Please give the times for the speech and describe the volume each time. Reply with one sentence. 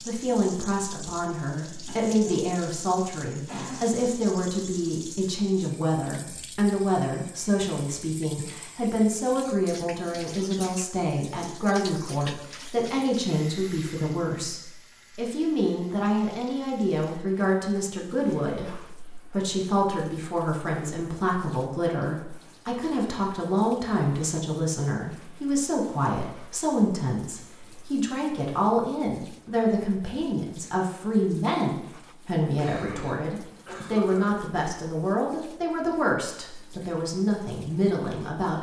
The speech can be heard from 0.0 to 38.5 s, at a steady volume.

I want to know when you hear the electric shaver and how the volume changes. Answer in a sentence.
The electric shaver can't be heard in this clip.